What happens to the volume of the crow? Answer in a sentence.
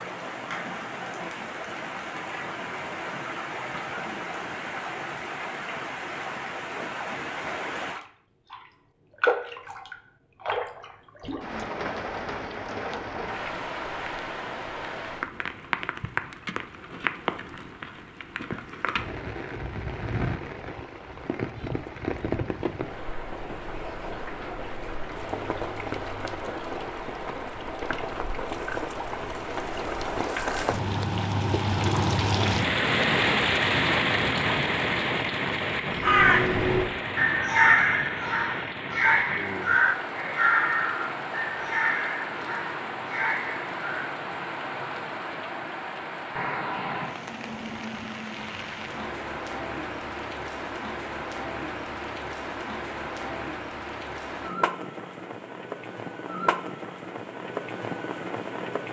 The volume of the crow goes down.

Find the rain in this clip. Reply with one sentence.
The rain can be heard from 0.0 to 58.8 s.